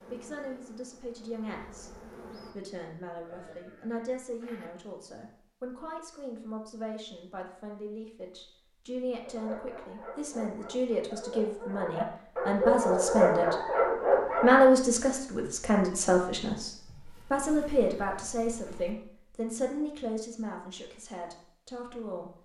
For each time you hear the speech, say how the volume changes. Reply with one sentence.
You can hear the speech from 0.1 to 13.6 s, getting louder; and from 14.3 to 22.4 s, getting quieter.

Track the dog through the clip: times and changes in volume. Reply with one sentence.
You can hear the dog from 9.2 to 14.7 s, getting louder.